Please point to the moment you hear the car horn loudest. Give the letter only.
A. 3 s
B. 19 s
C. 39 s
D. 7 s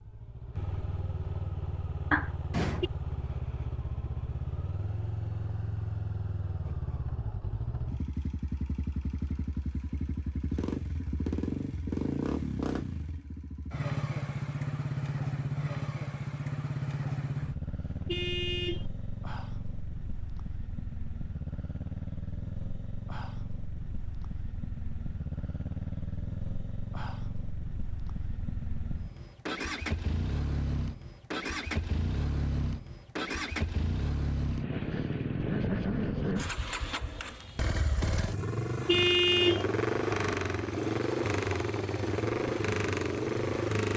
C.